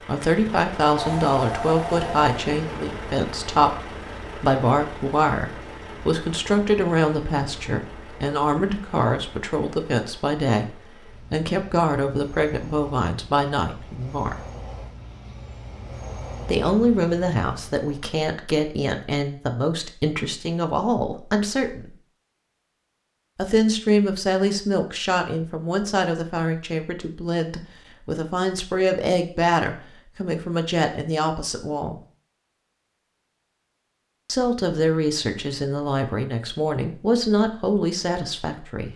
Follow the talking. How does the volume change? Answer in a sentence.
The loudness of the talking stays about the same.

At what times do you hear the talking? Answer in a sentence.
You can hear the talking from 0.0 to 14.4 s, from 16.4 to 21.9 s, from 23.4 to 32.0 s and from 34.2 to 38.9 s.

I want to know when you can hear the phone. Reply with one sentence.
You can hear the phone from 0.9 to 2.3 s.